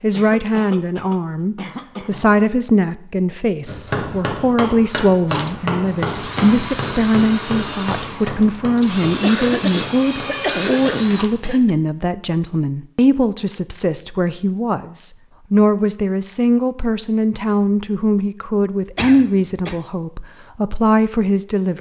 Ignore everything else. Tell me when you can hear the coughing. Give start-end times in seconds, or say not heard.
0.1-2.2, 9.1-11.8, 18.9-19.8.